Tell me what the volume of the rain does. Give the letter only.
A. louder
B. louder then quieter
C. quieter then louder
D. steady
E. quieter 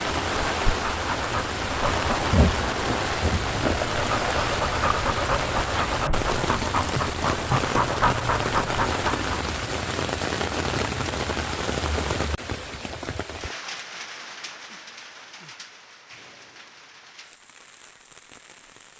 E.